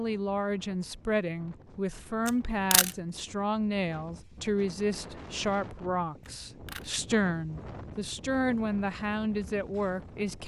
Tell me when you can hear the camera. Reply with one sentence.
The camera can be heard from 2.2 to 2.9 s and from 6.2 to 6.9 s.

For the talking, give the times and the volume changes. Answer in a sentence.
You can hear the talking from 0.0 to 10.4 s, at a steady volume.